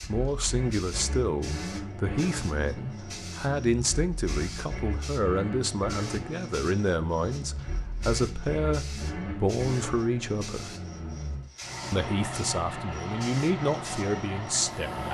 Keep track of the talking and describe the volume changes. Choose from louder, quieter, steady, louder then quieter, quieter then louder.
steady.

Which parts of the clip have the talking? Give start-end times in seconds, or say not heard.
0.1-10.8, 11.9-15.0.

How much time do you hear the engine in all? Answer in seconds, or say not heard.
15 s.